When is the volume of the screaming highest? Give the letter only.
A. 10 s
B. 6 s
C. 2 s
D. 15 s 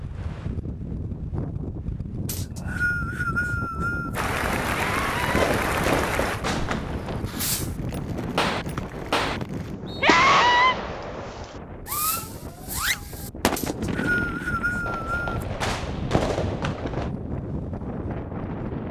A.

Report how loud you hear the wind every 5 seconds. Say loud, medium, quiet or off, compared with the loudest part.
loud, loud, medium, loud.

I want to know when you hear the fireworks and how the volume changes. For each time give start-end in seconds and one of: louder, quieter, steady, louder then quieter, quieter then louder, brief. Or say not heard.
5.2-17.1 steady.